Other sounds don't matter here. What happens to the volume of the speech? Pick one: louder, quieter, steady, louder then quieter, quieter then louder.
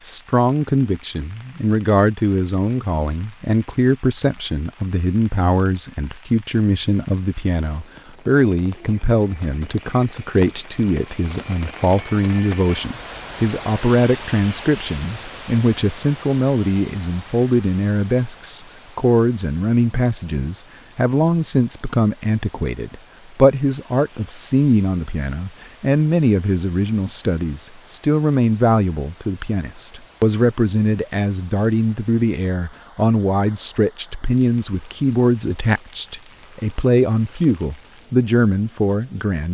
steady.